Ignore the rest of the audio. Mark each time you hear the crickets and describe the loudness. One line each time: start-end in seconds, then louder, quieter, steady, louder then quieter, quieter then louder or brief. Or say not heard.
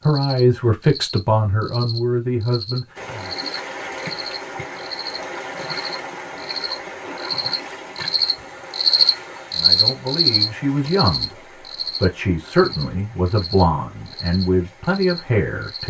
0.0-15.8 louder then quieter.